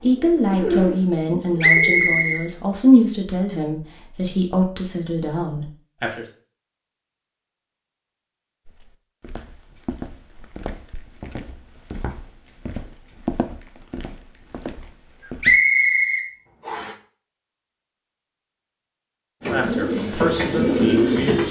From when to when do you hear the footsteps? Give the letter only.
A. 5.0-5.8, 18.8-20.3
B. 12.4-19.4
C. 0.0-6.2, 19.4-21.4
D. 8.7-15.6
D.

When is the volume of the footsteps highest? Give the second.
13 s.